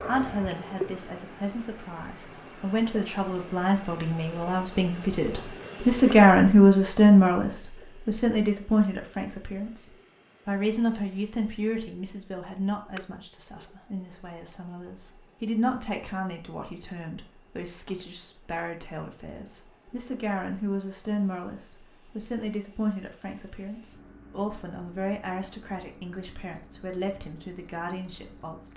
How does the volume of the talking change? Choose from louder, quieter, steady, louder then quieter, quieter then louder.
louder then quieter.